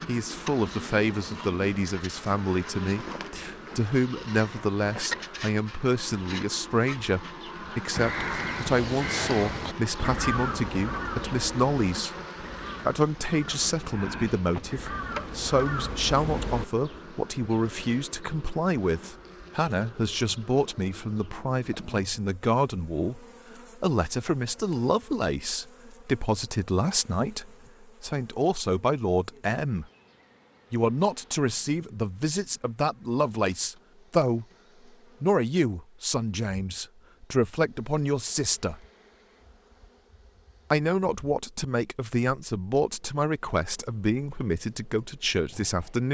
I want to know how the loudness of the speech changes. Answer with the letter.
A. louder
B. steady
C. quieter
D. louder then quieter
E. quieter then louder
B.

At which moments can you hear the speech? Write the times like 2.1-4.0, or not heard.
0.1-12.2, 12.8-29.9, 30.7-34.5, 35.2-38.8, 40.7-46.1.